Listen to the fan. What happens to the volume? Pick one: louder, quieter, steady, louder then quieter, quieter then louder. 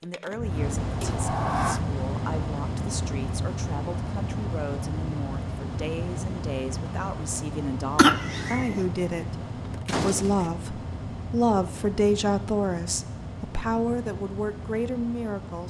quieter.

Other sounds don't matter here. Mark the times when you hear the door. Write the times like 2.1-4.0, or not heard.
1.0-1.8, 9.8-10.5.